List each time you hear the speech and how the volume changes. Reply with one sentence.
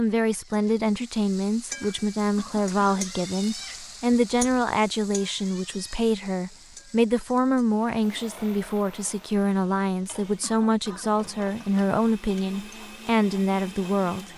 The speech can be heard from 0.0 to 14.3 s, at a steady volume.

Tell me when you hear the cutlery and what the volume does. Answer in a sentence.
You can't hear the cutlery here.